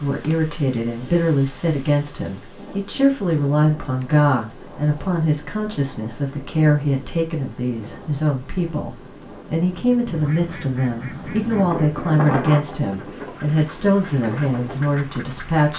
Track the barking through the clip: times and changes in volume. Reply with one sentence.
The barking can't be heard in this clip.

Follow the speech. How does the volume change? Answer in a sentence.
The loudness of the speech stays about the same.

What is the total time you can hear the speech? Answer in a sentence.
You can hear the speech for 16 seconds altogether.